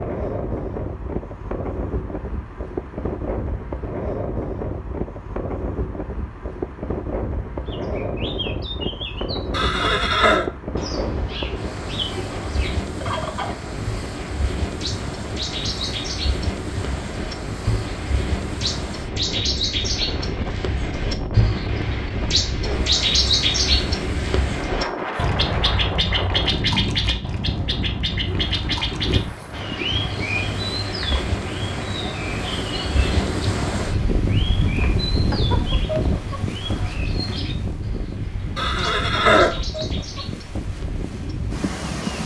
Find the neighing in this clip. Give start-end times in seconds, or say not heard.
9.5-10.5, 38.5-39.5.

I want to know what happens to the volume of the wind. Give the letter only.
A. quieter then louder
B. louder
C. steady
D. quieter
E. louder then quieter
C.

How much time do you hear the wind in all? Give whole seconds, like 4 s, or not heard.
42 s.